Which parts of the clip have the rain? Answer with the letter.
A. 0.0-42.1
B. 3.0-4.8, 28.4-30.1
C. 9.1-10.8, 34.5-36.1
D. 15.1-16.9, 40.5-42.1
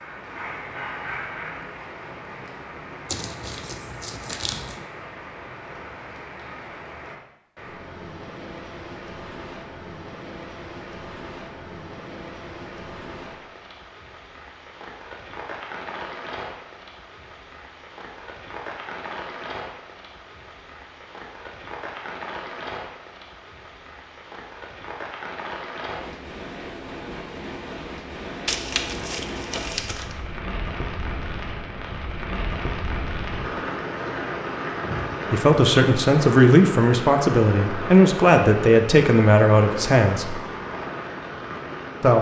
A.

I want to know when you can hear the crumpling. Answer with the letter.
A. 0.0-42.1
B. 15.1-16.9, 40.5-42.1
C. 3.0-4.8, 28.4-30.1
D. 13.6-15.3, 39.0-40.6
C.